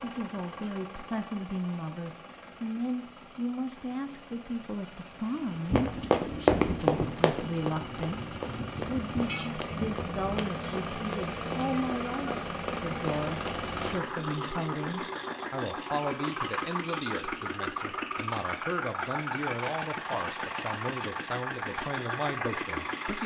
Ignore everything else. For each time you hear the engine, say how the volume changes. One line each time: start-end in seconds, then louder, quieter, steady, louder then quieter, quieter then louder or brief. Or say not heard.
0.0-23.2 louder.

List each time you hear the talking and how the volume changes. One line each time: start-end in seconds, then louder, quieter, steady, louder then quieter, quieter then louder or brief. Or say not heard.
0.0-23.2 steady.